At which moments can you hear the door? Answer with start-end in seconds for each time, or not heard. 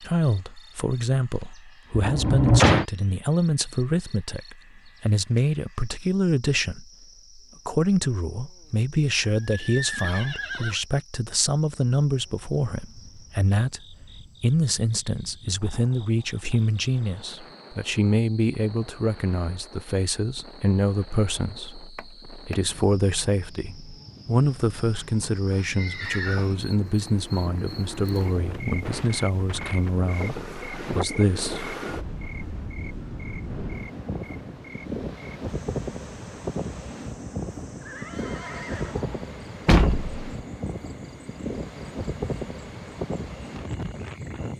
1.9-2.9, 21.9-22.6, 39.6-40.1.